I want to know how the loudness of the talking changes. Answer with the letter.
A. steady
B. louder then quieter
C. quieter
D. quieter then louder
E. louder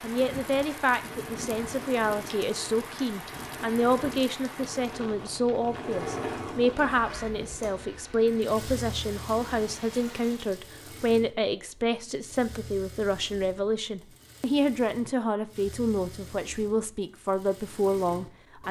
A.